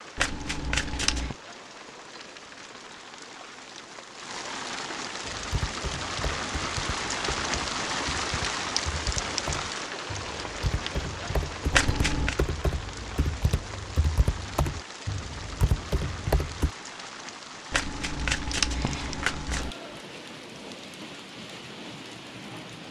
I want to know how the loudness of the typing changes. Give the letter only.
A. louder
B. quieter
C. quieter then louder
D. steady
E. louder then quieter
A.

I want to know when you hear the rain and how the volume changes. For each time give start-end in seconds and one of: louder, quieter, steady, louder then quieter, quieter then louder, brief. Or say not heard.
0.0-22.8 louder then quieter.